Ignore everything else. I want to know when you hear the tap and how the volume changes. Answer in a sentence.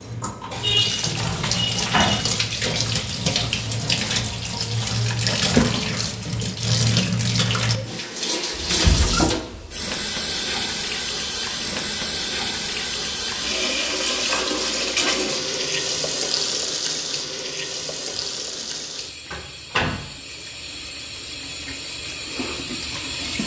You can hear the tap from 0.0 to 23.4 s, getting quieter.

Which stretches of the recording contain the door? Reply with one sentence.
You can hear the door from 0.9 to 2.2 s, from 8.6 to 9.8 s and from 19.3 to 20.1 s.